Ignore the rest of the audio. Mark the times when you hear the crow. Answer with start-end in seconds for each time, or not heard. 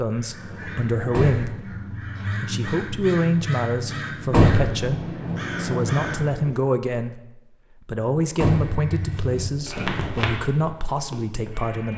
0.1-6.5.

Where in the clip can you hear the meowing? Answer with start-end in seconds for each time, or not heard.
not heard.